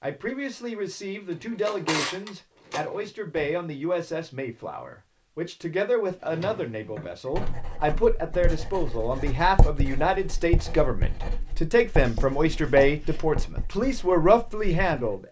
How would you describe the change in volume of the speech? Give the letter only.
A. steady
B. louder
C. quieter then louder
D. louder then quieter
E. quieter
B.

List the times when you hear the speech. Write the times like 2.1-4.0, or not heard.
0.0-15.2.